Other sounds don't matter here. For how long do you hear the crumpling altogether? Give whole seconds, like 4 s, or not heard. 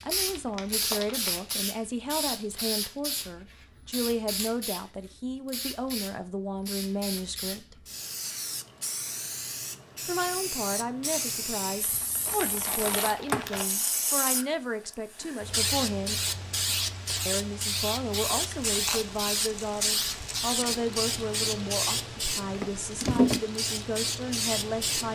5 s.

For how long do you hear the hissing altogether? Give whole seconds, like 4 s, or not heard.
25 s.